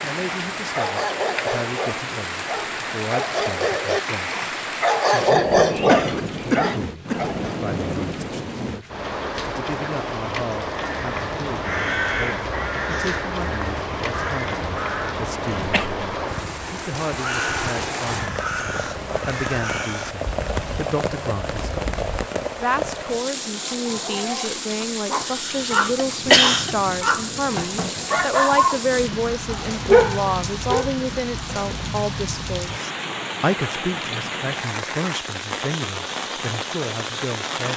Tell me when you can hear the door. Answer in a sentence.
The door can't be heard in this clip.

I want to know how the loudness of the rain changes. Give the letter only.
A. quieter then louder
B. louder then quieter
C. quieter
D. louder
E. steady
E.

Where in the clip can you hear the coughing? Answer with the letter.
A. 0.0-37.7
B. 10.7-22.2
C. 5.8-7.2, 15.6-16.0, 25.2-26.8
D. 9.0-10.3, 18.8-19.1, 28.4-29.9
C.